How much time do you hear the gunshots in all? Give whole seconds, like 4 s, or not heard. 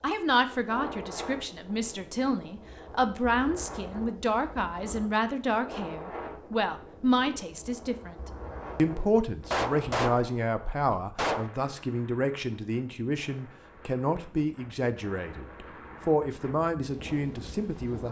2 s.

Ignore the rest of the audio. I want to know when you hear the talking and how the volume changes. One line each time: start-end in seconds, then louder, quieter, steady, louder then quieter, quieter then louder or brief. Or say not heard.
0.0-18.0 steady.